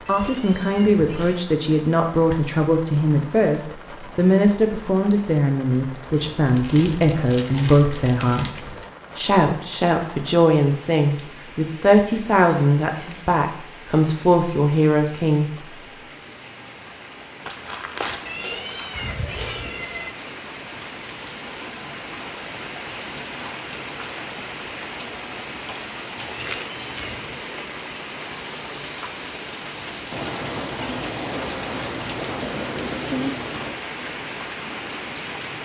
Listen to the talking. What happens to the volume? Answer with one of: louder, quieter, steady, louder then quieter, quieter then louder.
steady.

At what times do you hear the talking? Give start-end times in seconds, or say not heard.
0.1-15.4.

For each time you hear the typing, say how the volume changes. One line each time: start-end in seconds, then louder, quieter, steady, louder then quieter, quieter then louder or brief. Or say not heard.
not heard.